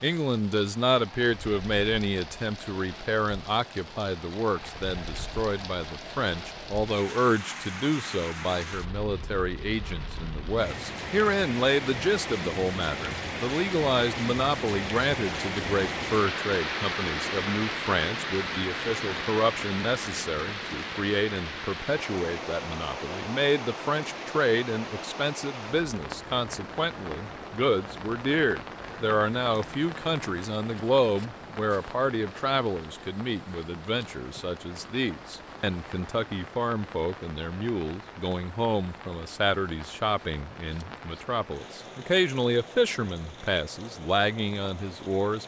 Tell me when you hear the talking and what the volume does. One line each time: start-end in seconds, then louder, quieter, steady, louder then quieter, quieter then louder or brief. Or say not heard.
0.0-45.4 steady.